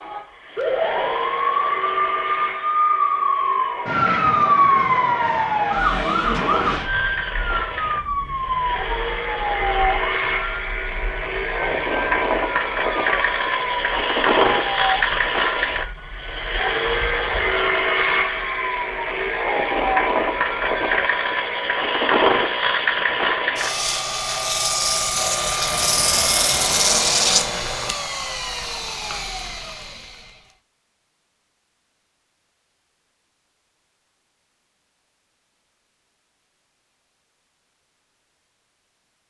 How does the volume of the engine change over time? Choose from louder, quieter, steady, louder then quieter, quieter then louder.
louder.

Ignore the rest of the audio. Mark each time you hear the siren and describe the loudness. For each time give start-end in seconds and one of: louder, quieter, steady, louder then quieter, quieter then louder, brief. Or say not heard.
0.0-20.9 quieter.